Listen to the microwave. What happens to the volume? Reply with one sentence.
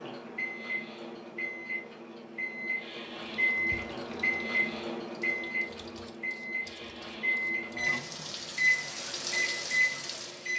The volume of the microwave goes up.